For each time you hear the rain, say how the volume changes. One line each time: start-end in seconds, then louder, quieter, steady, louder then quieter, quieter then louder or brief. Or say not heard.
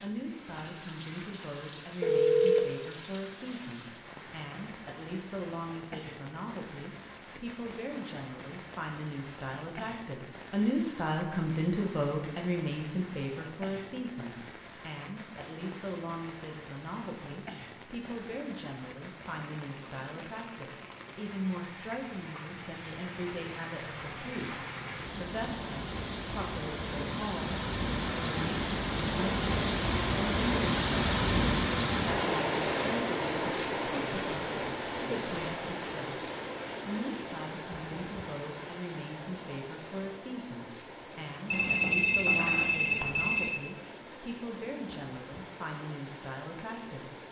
0.0-47.2 louder then quieter.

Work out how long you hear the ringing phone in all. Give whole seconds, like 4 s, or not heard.
3 s.